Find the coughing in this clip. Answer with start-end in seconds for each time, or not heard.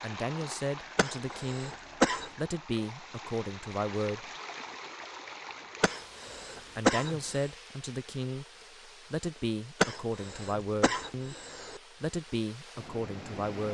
0.9-2.3, 5.8-7.5, 9.8-11.8.